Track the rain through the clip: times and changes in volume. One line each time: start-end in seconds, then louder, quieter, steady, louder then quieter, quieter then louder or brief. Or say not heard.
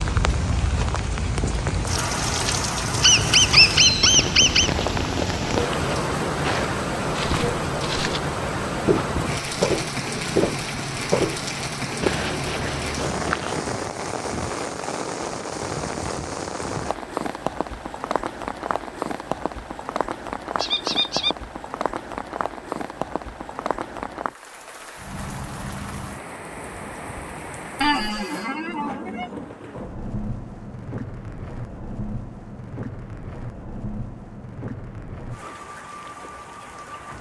0.0-37.1 quieter.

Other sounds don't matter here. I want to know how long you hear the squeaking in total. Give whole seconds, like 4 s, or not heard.
4 s.